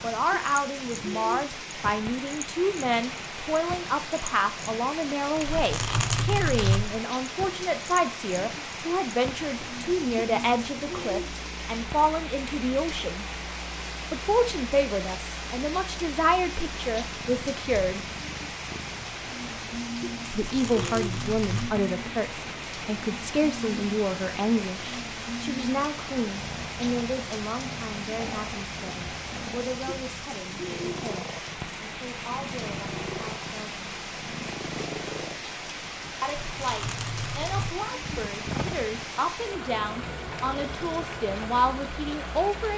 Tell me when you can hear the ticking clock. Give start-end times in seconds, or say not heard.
not heard.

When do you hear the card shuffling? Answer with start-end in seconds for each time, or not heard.
5.3-7.0, 20.2-21.8, 36.2-37.9.